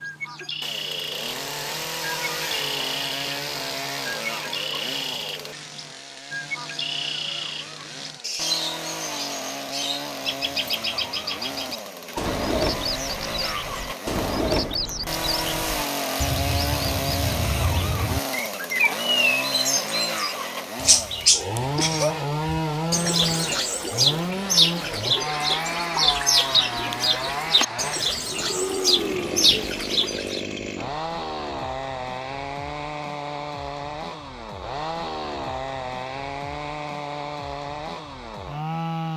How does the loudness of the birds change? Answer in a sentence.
The loudness of the birds goes up.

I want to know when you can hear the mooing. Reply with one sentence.
You can hear the mooing from 28.0 to 29.6 s.